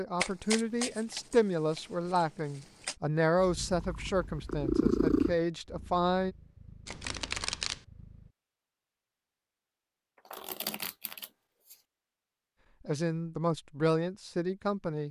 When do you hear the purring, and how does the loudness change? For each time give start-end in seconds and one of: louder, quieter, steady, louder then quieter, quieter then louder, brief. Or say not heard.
3.4-8.3 louder then quieter.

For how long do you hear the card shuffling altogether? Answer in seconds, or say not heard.
5 s.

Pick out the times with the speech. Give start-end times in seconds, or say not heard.
0.0-6.3, 12.8-15.0.